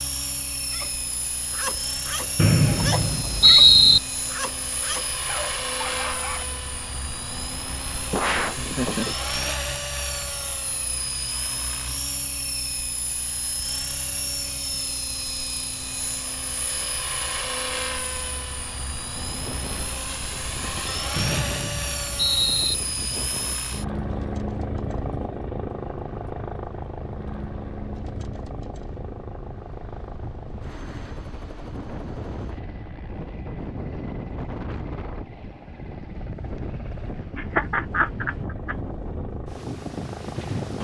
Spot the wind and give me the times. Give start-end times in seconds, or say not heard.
19.1-40.8.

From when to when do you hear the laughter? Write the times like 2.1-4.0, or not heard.
8.1-9.2, 37.4-38.8.